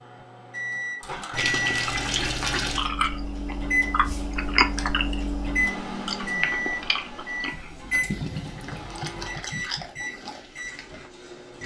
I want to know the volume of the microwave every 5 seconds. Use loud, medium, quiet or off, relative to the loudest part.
loud, loud, medium.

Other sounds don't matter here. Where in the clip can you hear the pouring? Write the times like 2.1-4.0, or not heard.
1.3-2.9, 8.1-10.1.